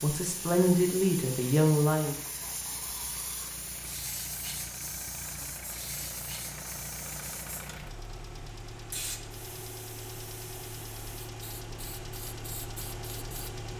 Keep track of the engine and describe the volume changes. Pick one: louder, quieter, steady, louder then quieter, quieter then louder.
louder.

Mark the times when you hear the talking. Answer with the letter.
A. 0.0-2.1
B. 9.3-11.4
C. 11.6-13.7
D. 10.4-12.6
A.